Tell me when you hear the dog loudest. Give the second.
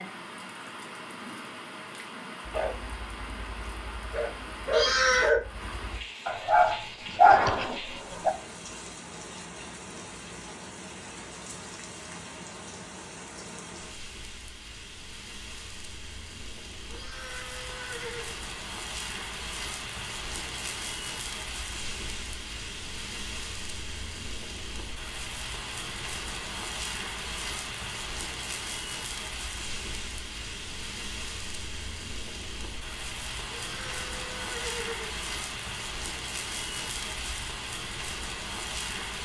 7 s.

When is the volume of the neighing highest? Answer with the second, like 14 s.
5 s.